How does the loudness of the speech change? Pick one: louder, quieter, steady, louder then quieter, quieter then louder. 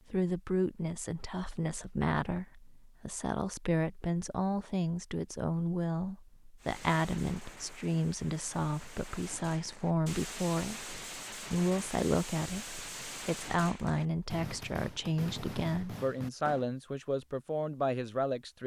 steady.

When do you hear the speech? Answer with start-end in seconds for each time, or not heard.
0.1-18.6.